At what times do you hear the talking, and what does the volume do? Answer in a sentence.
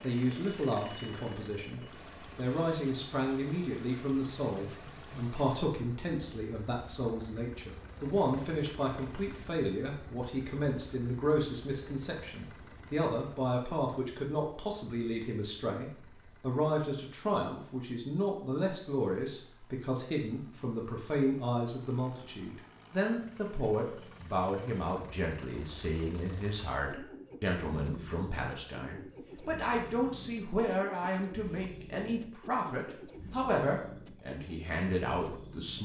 You can hear the talking from 0.0 to 35.8 s, at a steady volume.